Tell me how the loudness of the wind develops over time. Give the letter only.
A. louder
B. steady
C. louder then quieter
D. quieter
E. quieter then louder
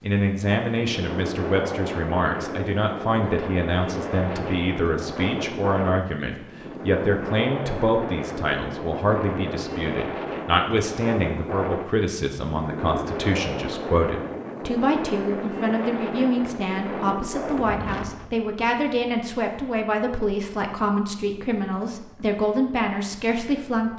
D.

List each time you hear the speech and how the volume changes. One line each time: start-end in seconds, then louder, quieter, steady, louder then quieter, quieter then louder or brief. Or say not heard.
0.0-23.9 steady.